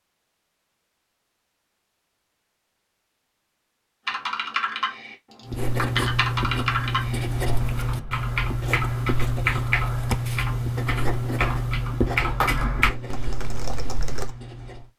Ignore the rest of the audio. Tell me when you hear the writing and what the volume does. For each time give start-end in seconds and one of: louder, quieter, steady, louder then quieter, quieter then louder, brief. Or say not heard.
5.5-14.9 quieter.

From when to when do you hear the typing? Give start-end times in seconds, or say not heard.
4.0-14.3.